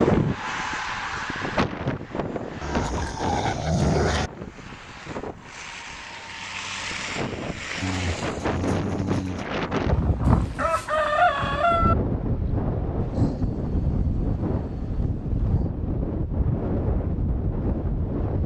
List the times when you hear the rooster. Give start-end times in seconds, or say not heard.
10.2-11.9.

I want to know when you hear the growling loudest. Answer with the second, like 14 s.
4 s.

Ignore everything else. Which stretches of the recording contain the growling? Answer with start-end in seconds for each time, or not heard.
2.6-4.3, 7.8-9.4, 13.0-15.7.